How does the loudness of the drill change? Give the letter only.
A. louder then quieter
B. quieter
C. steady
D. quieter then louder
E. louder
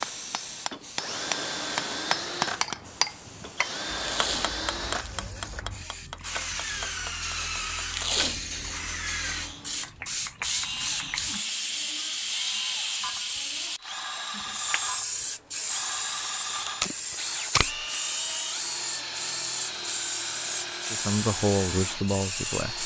C.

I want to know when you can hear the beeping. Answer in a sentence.
You can't hear the beeping here.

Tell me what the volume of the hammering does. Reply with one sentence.
The loudness of the hammering goes down.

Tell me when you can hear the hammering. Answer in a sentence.
The hammering can be heard from 0.0 to 9.9 s.